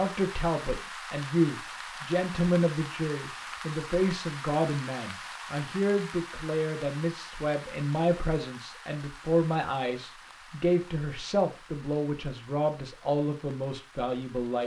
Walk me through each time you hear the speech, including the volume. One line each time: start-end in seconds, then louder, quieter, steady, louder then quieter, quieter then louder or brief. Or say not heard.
0.0-14.6 steady.